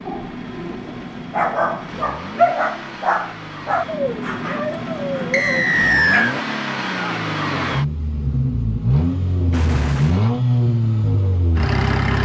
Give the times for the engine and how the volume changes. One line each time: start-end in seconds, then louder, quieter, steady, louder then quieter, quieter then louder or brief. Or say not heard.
0.0-12.2 louder.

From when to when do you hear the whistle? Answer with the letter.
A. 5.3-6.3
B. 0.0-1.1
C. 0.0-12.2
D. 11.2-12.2
A.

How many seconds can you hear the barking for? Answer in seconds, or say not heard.
6 s.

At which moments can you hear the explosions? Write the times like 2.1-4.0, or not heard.
9.5-10.3.